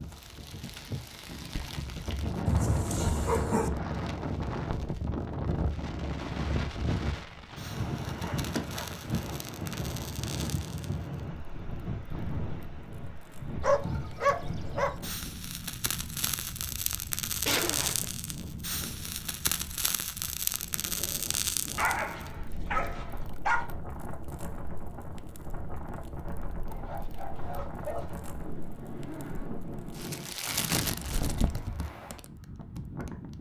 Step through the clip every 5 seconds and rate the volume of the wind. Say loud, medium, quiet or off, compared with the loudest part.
loud, loud, loud, medium, medium, medium, medium.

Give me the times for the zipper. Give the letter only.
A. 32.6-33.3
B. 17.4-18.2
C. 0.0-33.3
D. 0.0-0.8
B.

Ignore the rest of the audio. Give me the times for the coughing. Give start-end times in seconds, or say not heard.
not heard.